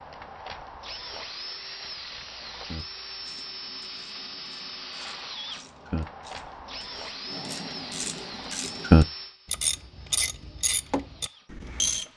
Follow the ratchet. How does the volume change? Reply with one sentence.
The volume of the ratchet goes up, then down.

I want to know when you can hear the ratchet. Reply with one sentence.
You can hear the ratchet from 2.6 to 12.1 s.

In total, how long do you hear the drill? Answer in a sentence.
The drill can be heard for 12 seconds in total.